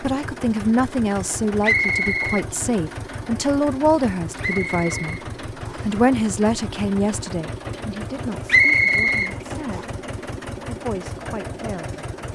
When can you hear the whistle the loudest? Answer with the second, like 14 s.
9 s.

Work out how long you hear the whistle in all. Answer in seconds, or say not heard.
4 s.